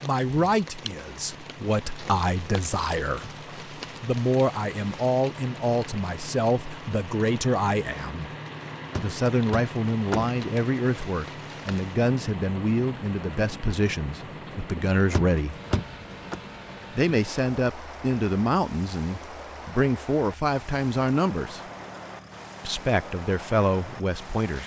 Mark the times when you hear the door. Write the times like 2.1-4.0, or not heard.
8.9-10.4, 15.1-16.4.